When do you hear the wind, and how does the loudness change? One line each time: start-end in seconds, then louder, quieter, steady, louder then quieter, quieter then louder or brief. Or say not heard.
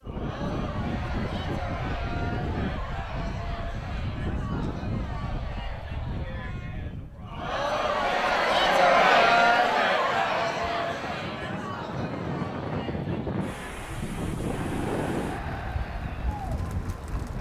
0.0-17.3 quieter then louder.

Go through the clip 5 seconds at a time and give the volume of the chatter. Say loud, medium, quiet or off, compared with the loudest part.
quiet, loud, medium, quiet.